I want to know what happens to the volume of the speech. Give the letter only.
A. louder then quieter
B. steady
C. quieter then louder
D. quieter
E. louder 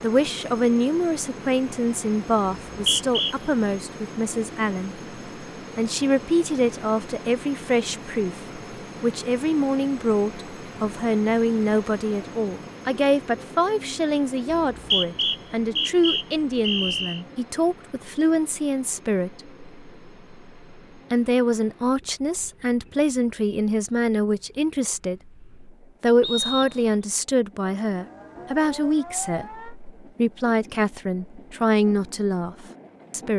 B.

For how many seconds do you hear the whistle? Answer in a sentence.
You can hear the whistle for 4 seconds altogether.